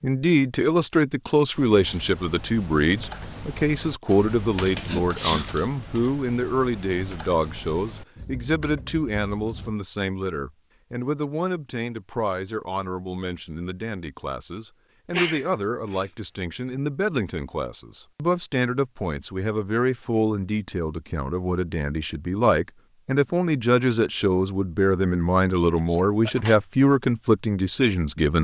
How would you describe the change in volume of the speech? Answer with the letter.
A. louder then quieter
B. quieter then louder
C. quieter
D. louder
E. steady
B.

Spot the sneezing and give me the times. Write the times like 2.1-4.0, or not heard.
4.8-5.5, 15.1-16.1, 25.8-26.6.